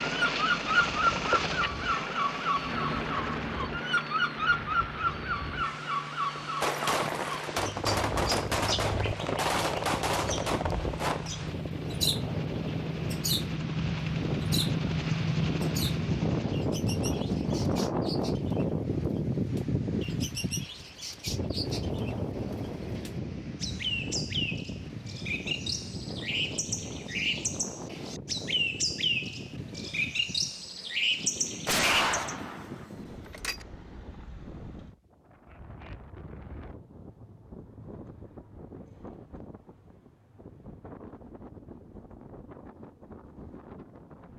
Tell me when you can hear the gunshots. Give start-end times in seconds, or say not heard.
6.6-11.3, 31.6-33.6.